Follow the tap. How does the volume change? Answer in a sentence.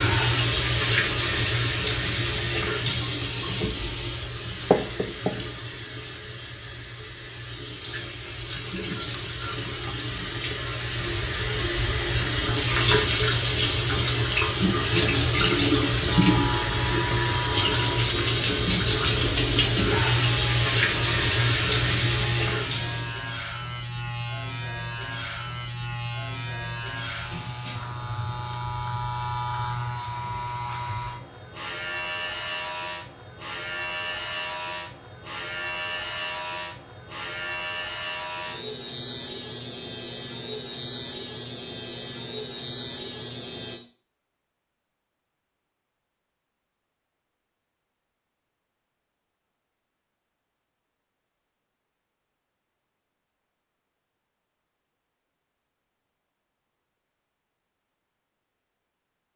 The volume of the tap goes down, then up.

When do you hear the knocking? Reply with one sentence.
The knocking can be heard from 4.7 to 5.3 s.